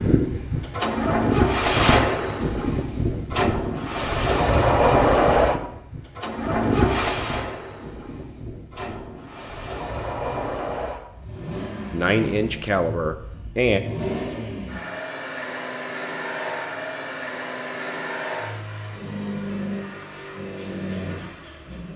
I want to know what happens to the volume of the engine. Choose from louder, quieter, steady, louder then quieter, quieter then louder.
quieter.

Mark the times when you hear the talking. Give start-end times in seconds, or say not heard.
11.9-13.8.